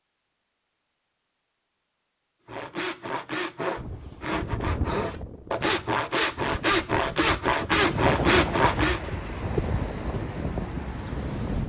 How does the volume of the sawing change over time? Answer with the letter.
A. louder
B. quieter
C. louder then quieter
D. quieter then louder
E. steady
A.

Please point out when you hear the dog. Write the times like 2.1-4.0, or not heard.
not heard.